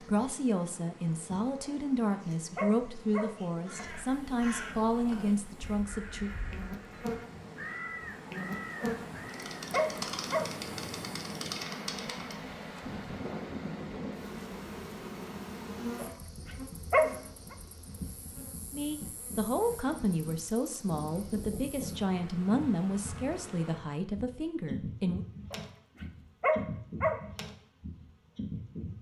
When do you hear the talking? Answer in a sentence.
The talking can be heard from 0.0 to 6.3 s and from 18.7 to 25.2 s.